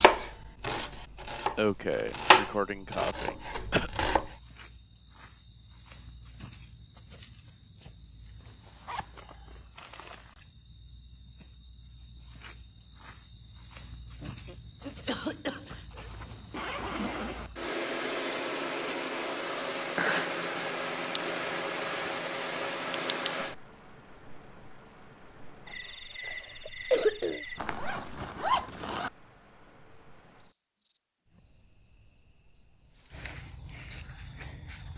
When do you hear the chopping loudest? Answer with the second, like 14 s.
2 s.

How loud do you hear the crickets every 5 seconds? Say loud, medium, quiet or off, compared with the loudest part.
medium, medium, loud, loud, loud, medium, medium.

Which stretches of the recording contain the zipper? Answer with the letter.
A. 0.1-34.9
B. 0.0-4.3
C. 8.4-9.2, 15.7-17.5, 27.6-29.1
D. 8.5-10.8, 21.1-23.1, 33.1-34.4
C.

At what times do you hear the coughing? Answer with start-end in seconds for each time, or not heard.
1.6-3.9, 14.2-16.1, 26.2-27.4.